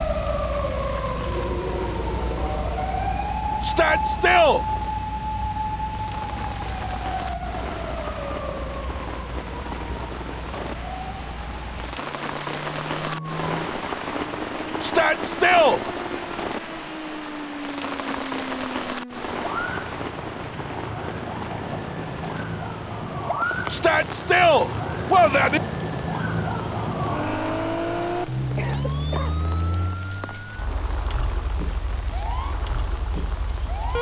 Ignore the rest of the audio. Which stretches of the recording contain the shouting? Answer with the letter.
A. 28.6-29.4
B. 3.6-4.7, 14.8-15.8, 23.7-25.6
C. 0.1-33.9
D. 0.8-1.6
B.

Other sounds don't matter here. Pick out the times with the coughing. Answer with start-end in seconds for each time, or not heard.
28.6-29.4.